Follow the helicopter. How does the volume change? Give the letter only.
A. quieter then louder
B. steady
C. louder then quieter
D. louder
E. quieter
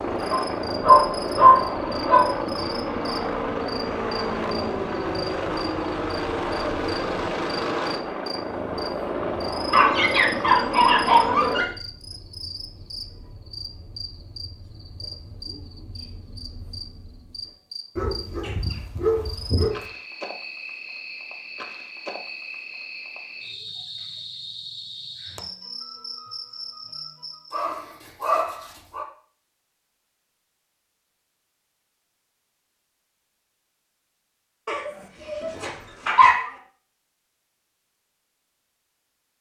B.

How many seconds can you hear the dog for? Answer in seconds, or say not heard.
9 s.